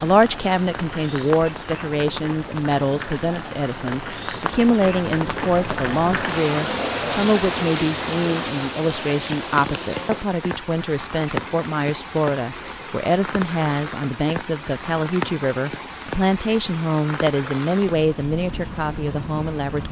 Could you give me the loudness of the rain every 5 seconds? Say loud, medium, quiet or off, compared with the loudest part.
medium, loud, medium, medium.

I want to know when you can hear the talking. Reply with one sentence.
The talking can be heard from 0.0 to 19.8 s.